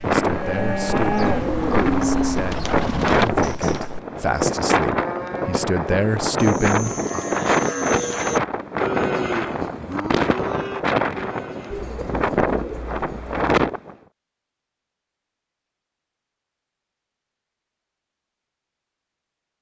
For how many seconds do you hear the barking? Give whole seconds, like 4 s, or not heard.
not heard.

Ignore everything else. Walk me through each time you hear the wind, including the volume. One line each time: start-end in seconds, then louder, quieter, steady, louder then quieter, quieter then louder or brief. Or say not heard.
0.0-13.9 steady.